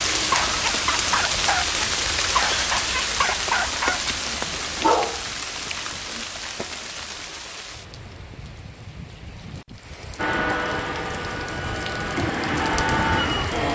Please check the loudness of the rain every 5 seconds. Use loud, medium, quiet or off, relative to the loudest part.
loud, medium, medium.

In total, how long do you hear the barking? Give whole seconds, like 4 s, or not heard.
6 s.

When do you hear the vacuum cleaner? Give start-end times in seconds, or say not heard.
10.2-13.6.